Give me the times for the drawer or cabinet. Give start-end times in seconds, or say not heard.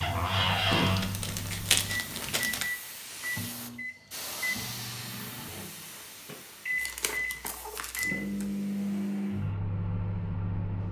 0.0-1.1.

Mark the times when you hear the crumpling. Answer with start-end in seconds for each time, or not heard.
0.7-2.7, 6.8-8.5.